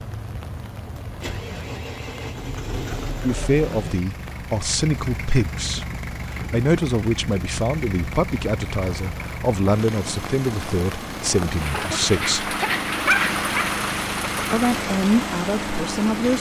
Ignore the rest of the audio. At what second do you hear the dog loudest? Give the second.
13 s.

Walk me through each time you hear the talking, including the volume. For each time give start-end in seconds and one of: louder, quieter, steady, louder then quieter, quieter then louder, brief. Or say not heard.
3.2-12.6 steady
14.5-16.3 brief.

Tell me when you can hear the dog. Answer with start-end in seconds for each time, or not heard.
11.7-13.7.